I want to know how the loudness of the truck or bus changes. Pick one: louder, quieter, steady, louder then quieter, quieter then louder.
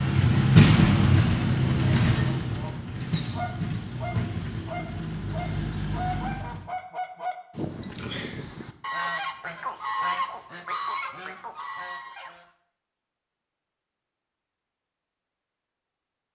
quieter.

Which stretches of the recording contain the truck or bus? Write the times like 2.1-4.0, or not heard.
0.0-6.7.